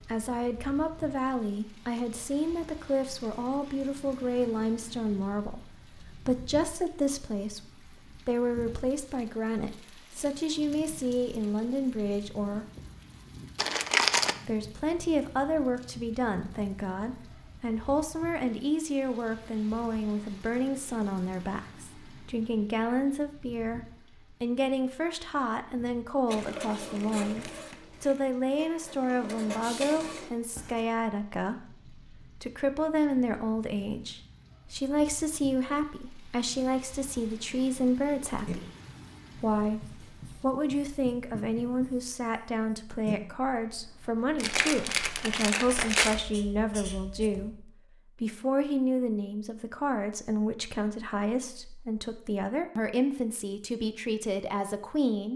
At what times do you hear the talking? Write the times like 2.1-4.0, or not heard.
0.1-12.7, 14.4-38.7, 39.4-55.3.